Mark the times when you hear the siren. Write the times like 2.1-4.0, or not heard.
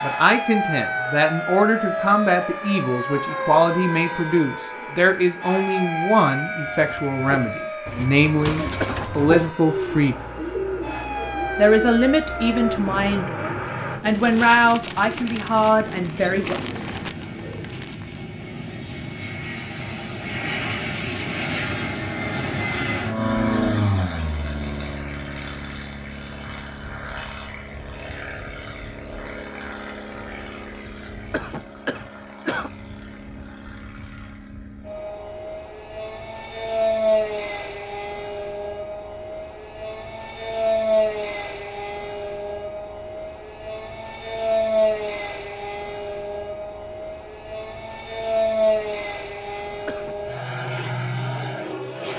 0.0-12.8.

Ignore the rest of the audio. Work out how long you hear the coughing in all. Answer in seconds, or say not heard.
3 s.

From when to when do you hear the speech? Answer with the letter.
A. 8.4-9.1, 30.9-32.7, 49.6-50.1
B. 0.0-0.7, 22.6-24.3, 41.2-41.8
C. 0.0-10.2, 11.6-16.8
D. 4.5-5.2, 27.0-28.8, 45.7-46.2
C.